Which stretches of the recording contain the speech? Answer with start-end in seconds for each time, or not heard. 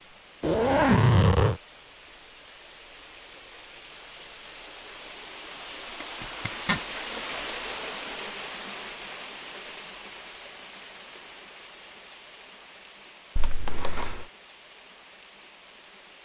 not heard.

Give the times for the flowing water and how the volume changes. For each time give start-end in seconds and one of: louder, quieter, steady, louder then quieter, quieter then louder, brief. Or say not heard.
0.0-16.1 louder then quieter.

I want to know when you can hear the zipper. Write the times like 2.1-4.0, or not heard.
0.4-1.6, 6.0-6.8, 13.3-14.2.